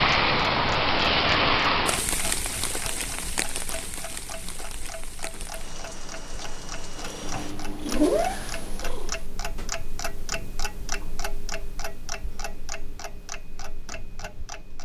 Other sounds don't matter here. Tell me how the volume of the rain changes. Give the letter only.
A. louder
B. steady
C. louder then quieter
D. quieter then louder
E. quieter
E.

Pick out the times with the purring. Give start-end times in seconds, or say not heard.
7.0-9.2.